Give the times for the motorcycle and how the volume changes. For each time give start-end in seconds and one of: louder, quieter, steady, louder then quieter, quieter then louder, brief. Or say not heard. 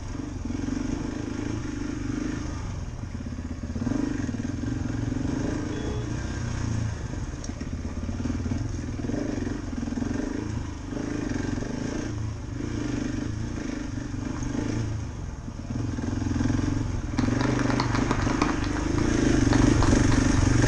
0.0-20.6 louder.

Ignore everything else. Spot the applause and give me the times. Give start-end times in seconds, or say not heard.
17.1-20.6.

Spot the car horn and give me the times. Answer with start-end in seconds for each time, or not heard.
4.8-6.1.